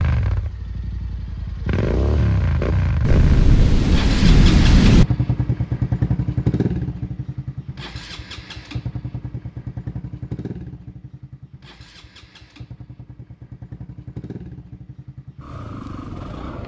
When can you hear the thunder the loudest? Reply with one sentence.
The volume of the thunder peaks at 5 seconds.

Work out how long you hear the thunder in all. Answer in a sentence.
You can hear the thunder for 2 seconds altogether.